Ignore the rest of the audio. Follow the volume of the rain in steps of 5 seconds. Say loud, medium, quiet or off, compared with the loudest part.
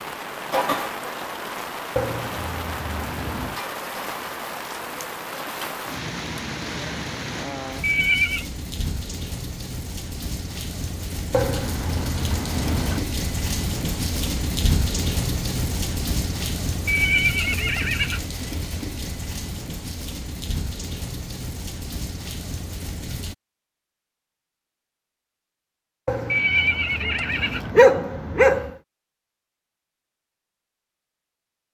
loud, loud, loud, loud, medium, off, off.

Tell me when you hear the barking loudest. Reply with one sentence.
The loudest moment of the barking is at 28 seconds.